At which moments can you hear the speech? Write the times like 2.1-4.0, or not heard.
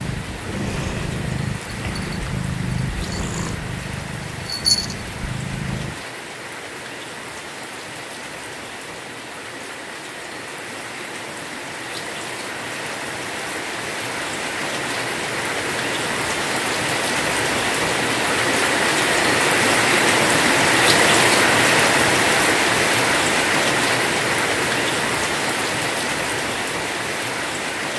not heard.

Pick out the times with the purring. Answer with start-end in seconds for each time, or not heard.
0.0-6.0.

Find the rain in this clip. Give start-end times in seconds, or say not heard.
0.0-27.9.